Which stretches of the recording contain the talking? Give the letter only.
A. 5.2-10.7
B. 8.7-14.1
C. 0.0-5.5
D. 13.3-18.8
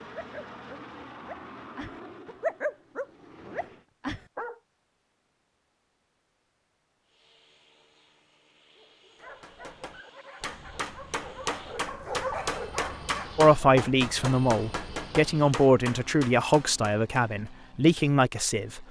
D.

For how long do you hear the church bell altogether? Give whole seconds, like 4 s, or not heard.
not heard.